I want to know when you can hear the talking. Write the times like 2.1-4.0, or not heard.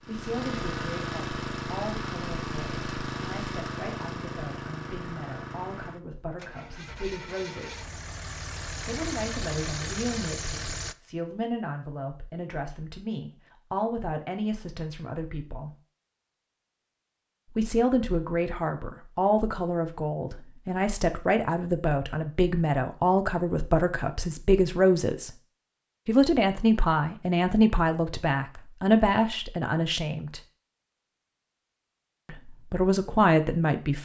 0.0-7.8, 8.8-15.7, 17.5-25.3, 26.1-30.4, 32.2-34.0.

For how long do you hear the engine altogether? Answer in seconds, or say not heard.
11 s.